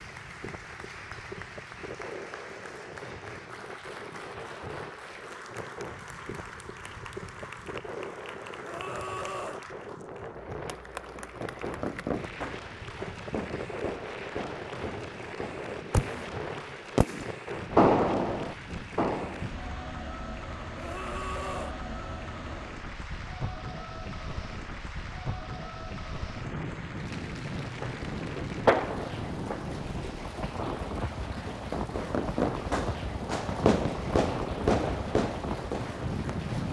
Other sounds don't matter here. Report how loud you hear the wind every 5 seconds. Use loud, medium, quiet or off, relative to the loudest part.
medium, medium, medium, medium, medium, loud, loud, loud.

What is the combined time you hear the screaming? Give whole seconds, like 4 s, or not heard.
2 s.